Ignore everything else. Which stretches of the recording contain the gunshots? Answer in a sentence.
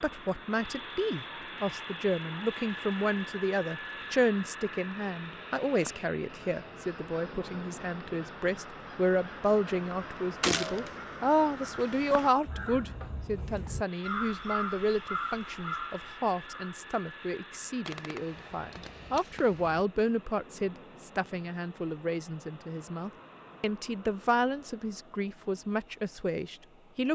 You can hear the gunshots from 10.4 to 10.9 s and from 17.9 to 19.9 s.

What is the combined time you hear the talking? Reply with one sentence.
You can hear the talking for 27 seconds altogether.